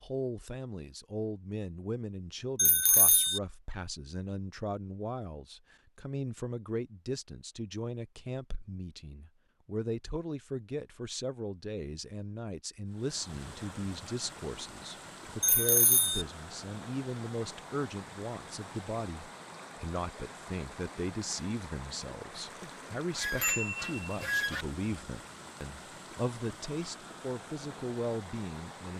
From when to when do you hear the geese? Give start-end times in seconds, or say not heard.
22.6-24.6.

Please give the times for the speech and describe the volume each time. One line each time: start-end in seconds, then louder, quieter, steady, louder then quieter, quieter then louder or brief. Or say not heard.
0.0-28.9 steady.